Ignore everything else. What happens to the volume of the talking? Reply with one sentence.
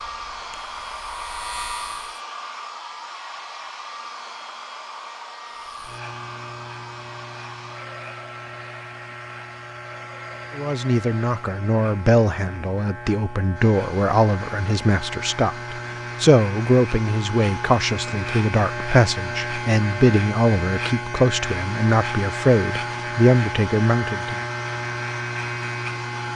The loudness of the talking stays about the same.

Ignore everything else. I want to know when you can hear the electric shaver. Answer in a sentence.
You can hear the electric shaver from 0.0 to 2.2 s and from 5.6 to 26.3 s.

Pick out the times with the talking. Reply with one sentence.
The talking can be heard from 10.6 to 24.4 s.